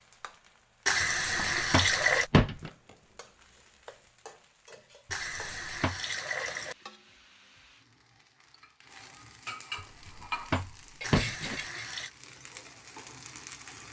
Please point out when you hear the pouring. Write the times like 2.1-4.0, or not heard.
0.8-2.3, 5.1-6.8, 11.0-12.1.